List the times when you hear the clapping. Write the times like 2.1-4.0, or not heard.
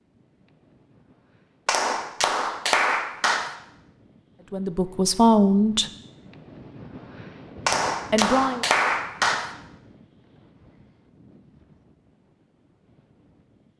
1.6-3.5, 7.7-9.6.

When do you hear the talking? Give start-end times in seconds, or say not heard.
4.5-5.9, 8.1-8.7.